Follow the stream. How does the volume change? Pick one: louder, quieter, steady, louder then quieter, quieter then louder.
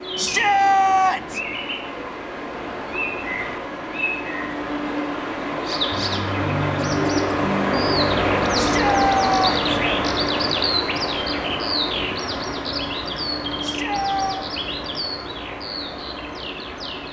louder then quieter.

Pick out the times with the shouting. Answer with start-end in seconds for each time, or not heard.
0.1-1.4, 8.6-9.8, 13.6-14.4.